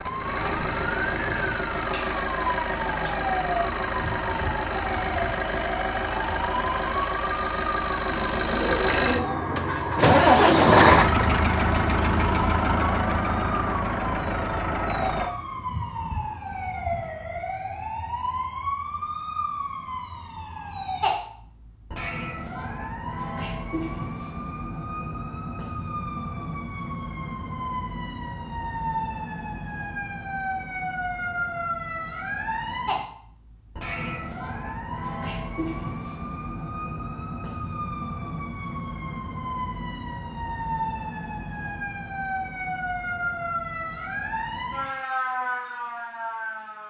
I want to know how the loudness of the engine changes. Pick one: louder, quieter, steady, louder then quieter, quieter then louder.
louder then quieter.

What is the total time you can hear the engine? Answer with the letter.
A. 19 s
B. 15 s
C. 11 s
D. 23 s
B.